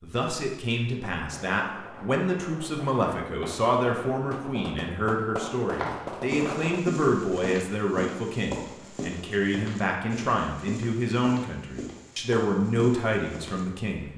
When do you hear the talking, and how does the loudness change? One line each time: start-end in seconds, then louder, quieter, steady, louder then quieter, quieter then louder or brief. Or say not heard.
0.0-14.1 steady.